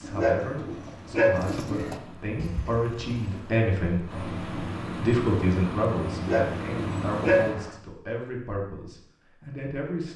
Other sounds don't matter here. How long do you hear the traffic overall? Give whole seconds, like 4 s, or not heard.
8 s.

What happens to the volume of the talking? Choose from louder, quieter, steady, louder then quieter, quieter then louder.
louder then quieter.